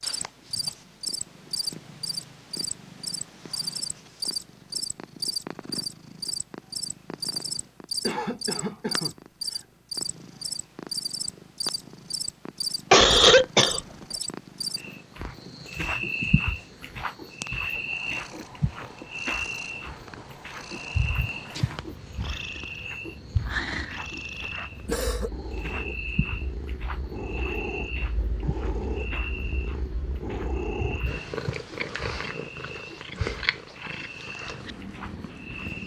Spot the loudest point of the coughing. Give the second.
13 s.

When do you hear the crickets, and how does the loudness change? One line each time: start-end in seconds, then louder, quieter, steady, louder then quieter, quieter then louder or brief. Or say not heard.
0.0-35.8 quieter.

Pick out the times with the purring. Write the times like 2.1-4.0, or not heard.
0.0-35.8.